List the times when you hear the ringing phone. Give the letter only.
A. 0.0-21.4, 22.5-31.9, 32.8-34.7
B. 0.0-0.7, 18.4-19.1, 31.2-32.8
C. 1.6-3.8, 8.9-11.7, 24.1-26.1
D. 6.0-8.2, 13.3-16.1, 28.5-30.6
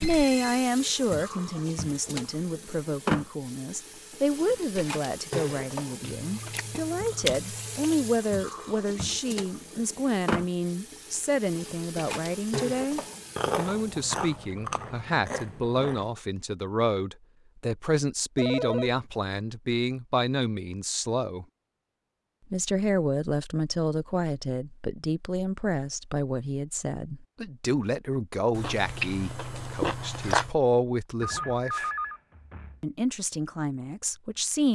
B.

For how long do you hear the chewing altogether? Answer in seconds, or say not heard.
7 s.